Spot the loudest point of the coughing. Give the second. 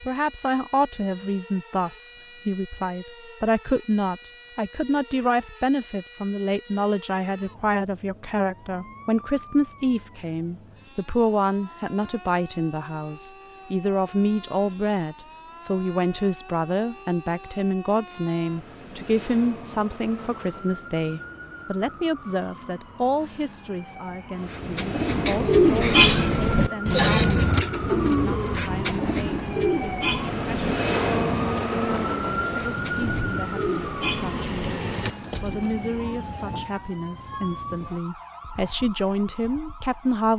27 s.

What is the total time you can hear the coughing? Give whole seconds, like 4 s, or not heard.
2 s.